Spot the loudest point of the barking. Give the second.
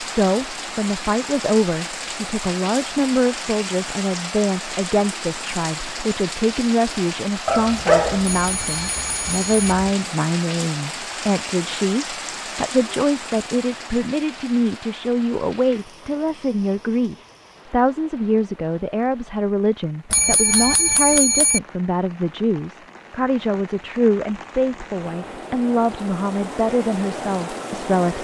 8 s.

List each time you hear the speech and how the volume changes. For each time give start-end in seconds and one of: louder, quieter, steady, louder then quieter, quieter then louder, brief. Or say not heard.
0.0-28.2 steady.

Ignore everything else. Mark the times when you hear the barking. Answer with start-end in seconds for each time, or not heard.
7.5-9.9.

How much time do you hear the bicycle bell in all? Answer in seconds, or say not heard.
3 s.